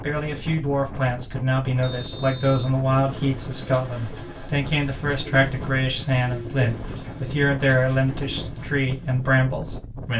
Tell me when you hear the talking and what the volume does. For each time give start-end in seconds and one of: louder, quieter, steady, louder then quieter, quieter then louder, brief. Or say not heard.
0.0-10.1 steady.